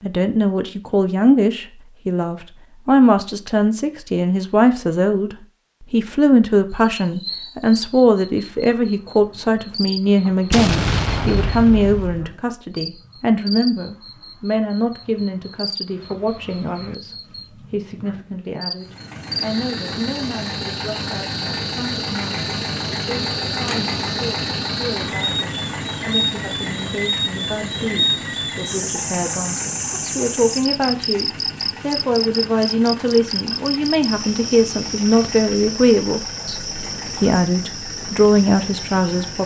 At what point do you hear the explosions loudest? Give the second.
11 s.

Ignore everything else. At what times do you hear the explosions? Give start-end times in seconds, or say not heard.
10.5-12.2.